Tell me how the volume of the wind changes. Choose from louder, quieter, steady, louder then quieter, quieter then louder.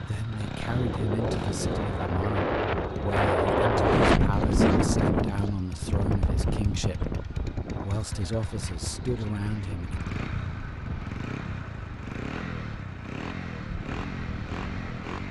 louder then quieter.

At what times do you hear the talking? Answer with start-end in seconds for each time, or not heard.
0.0-10.1.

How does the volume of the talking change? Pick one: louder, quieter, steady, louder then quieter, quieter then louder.
steady.